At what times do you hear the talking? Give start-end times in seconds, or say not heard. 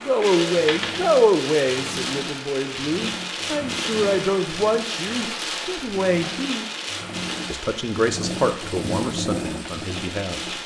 0.0-6.7, 7.5-10.4.